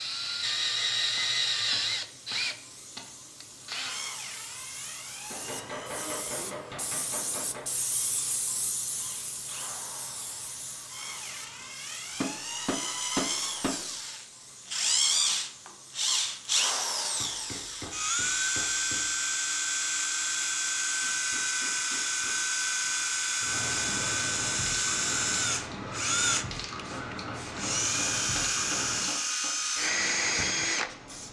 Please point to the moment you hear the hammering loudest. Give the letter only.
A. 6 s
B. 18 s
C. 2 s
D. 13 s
D.